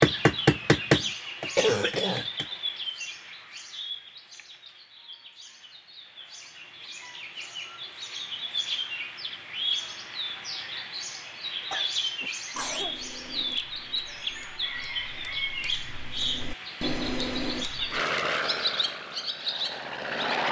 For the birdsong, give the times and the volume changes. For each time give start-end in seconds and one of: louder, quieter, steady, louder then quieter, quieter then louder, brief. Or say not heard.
0.0-20.4 quieter then louder.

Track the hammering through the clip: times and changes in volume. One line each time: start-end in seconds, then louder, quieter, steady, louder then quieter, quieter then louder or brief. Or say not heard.
0.0-2.5 brief
12.2-18.1 quieter then louder.